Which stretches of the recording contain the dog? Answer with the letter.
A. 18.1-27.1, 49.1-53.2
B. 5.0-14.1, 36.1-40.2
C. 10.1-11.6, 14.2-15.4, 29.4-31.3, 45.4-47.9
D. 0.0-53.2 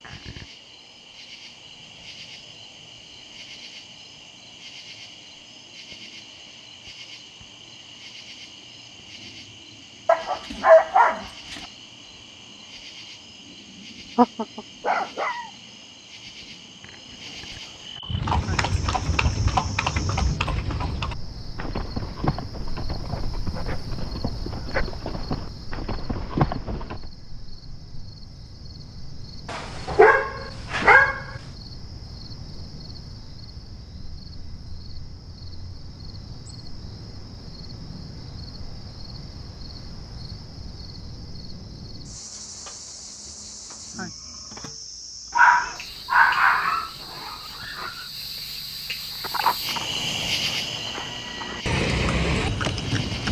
C.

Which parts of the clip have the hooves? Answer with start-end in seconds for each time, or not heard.
18.1-27.1, 49.1-53.2.